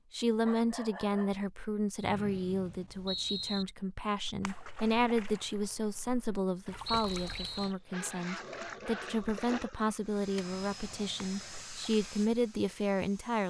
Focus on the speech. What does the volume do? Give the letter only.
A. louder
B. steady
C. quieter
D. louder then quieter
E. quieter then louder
B.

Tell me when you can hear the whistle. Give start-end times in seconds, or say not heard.
2.0-3.6, 6.8-7.8.